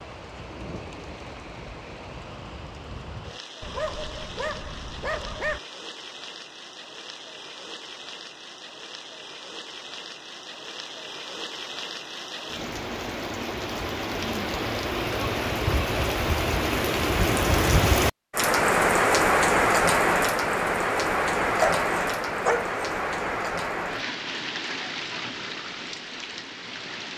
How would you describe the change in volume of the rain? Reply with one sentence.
The volume of the rain goes up, then down.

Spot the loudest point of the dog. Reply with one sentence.
The volume of the dog peaks at 22 seconds.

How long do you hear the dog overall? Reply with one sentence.
You can hear the dog for 3 seconds altogether.